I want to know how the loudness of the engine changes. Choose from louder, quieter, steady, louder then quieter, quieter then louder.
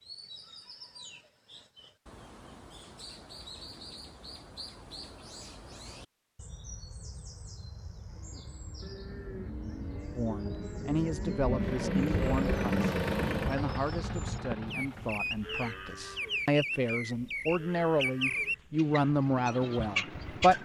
louder then quieter.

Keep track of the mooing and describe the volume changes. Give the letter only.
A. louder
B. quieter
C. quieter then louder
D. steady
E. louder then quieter
E.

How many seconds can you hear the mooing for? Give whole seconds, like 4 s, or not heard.
12 s.